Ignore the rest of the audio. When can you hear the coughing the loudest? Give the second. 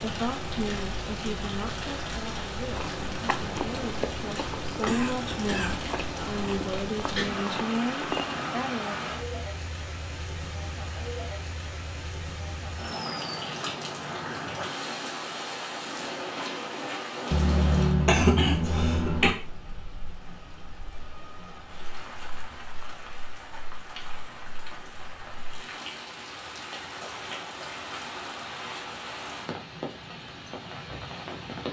18 s.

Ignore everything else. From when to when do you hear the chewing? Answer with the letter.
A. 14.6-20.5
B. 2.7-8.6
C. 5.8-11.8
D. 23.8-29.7
B.